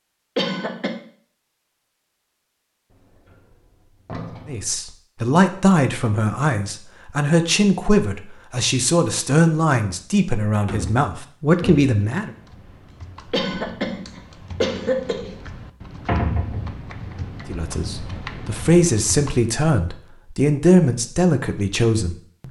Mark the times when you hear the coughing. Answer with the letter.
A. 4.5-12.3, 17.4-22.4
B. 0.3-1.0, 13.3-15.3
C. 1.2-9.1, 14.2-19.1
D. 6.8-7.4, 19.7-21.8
B.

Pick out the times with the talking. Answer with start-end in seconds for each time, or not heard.
4.5-12.3, 17.4-22.4.